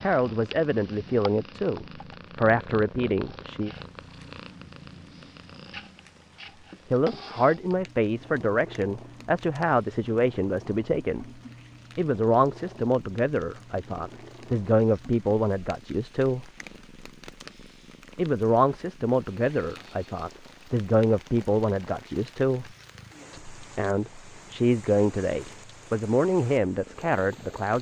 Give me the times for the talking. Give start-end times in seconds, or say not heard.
0.0-3.7, 6.9-11.2, 11.9-16.5, 18.1-22.7, 23.3-27.7.